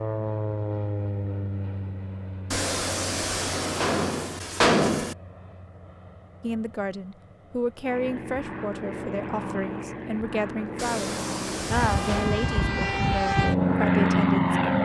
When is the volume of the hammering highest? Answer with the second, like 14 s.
5 s.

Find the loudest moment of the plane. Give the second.
14 s.